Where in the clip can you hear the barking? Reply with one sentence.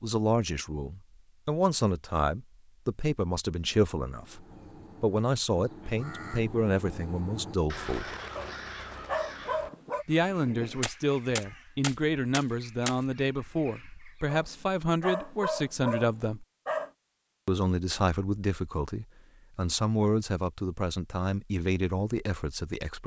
The barking can be heard from 8.3 to 10.1 s and from 14.2 to 16.9 s.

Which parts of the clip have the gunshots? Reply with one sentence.
The gunshots can be heard from 9.7 to 13.1 s.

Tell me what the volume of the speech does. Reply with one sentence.
The loudness of the speech stays about the same.